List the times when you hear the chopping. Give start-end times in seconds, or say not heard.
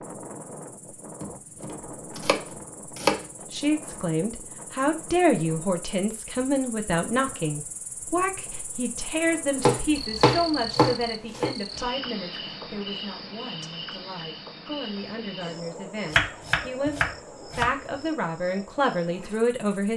1.2-3.2, 9.6-11.6, 16.1-17.7.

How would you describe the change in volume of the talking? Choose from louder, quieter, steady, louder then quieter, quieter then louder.
quieter then louder.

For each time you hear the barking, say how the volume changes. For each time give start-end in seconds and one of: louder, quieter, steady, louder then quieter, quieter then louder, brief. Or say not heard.
not heard.